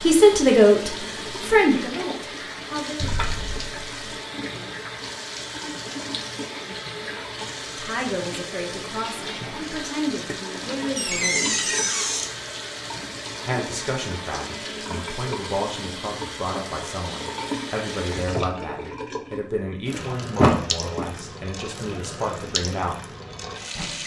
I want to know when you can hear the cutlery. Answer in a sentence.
The cutlery can't be heard in this clip.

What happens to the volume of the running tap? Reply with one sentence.
The loudness of the running tap stays about the same.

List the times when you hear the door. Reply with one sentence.
You can hear the door from 3.0 to 3.6 s, from 10.9 to 12.3 s and from 20.4 to 21.1 s.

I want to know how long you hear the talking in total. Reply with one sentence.
You can hear the talking for 17 seconds altogether.